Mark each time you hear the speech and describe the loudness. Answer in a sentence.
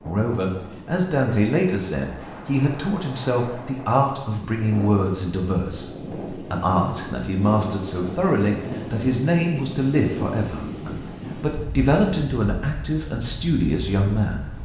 The speech can be heard from 0.1 to 14.5 s, at a steady volume.